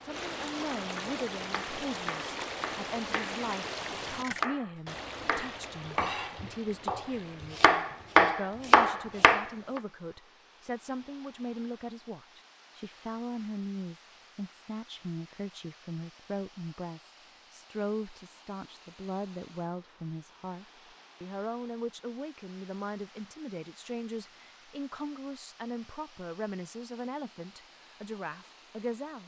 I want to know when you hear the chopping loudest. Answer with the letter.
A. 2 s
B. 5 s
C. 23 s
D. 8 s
D.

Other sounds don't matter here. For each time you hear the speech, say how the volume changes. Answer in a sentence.
You can hear the speech from 0.0 to 29.2 s, at a steady volume.